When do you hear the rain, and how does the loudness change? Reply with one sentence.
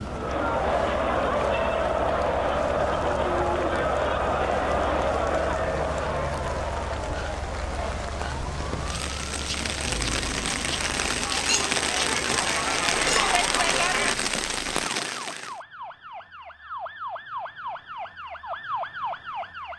The rain can be heard from 0.0 to 15.6 s, getting louder.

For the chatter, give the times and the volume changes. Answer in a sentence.
You can hear the chatter from 0.0 to 14.2 s, getting quieter then louder.